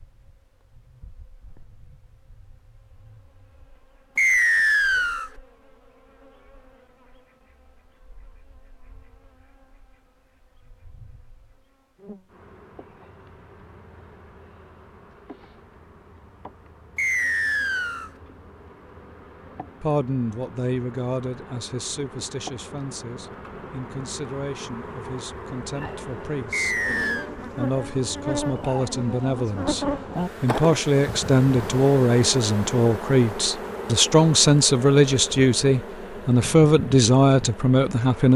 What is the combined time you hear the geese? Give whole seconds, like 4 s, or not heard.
not heard.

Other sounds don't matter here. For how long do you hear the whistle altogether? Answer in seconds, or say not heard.
3 s.